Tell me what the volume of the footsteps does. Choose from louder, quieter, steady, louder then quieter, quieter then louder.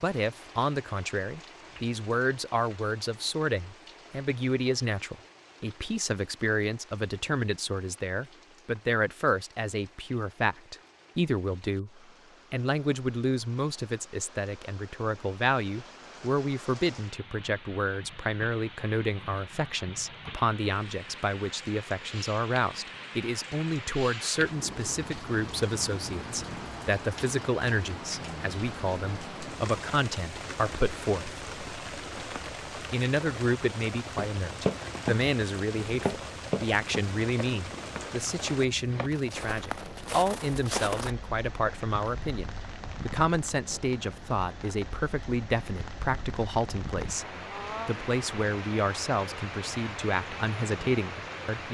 quieter then louder.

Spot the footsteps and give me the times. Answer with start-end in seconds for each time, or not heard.
34.1-41.1.